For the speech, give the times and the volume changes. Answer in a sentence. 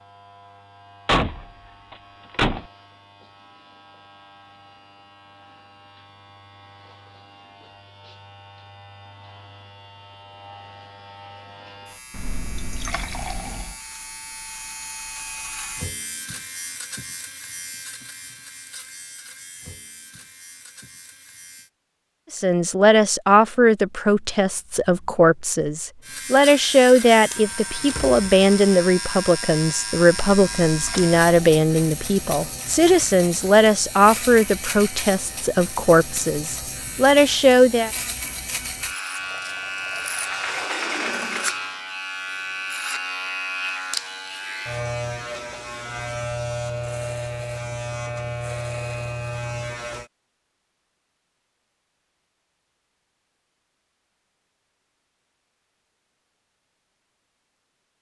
You can hear the speech from 22.3 to 37.9 s, at a steady volume.